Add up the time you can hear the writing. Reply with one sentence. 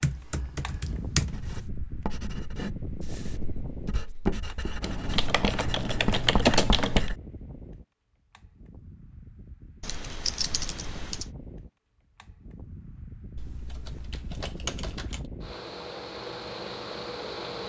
The writing can be heard for 6 seconds in total.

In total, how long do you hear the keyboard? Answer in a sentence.
You can hear the keyboard for 7 seconds altogether.